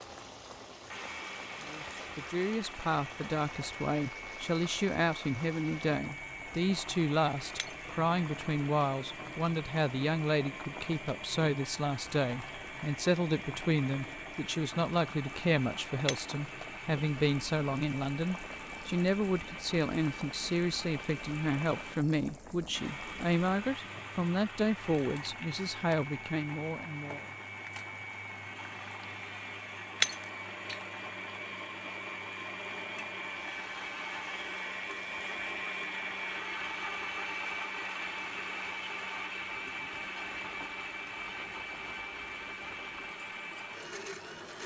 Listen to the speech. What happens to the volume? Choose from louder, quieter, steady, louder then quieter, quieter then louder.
steady.